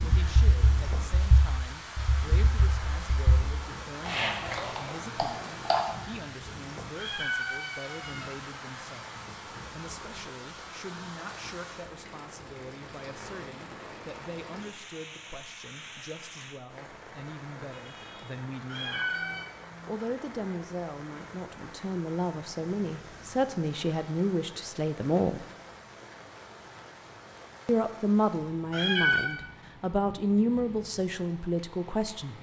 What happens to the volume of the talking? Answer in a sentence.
The volume of the talking goes up.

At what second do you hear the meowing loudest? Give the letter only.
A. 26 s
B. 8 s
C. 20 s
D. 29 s
D.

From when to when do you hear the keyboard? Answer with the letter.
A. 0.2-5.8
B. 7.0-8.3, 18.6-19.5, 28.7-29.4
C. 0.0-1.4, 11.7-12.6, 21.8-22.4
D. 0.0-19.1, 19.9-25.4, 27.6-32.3
A.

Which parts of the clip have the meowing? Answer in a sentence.
The meowing can be heard from 7.0 to 8.3 s, from 18.6 to 19.5 s and from 28.7 to 29.4 s.